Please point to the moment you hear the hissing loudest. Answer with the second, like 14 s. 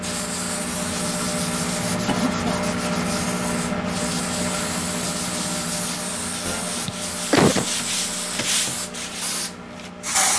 10 s.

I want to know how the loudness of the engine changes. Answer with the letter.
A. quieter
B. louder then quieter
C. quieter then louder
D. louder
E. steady
A.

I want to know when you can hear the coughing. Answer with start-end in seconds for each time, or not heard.
2.0-2.7, 6.8-7.7.